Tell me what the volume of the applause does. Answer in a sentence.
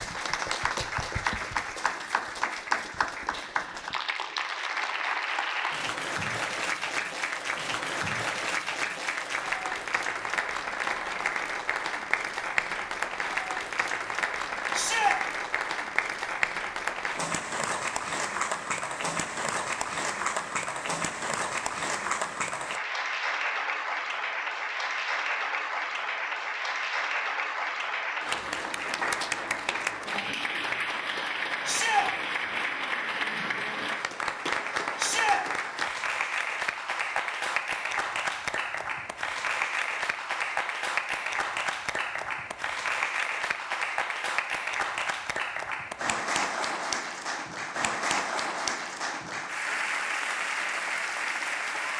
The volume of the applause stays about the same.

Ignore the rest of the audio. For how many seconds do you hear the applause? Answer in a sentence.
The applause can be heard for 52 seconds in total.